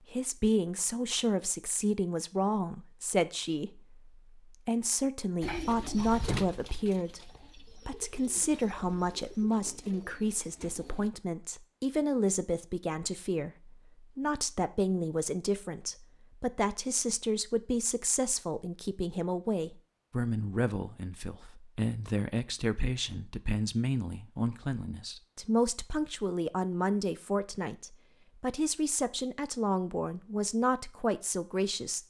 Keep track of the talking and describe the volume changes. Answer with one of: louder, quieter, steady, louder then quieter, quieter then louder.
steady.